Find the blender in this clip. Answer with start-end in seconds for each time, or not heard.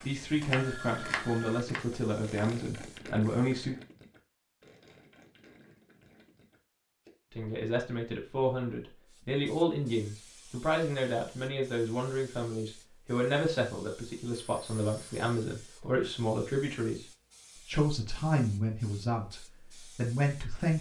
not heard.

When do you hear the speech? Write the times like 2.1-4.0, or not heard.
0.0-3.8, 7.3-17.1, 17.6-20.7.